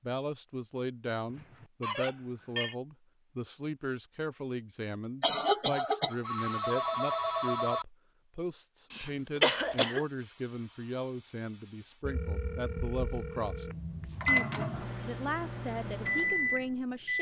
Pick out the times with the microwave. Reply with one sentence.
The microwave can be heard from 14.2 to 17.1 s.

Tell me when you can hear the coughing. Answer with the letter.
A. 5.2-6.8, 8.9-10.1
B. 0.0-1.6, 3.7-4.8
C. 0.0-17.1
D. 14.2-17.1
A.